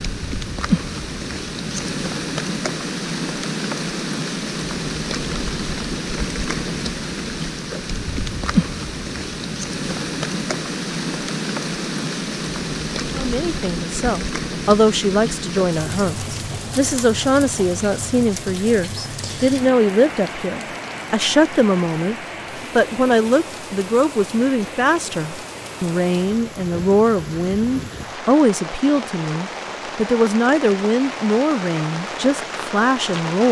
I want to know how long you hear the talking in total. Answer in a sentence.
You can hear the talking for 20 seconds altogether.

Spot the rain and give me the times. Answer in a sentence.
You can hear the rain from 0.0 to 33.4 s.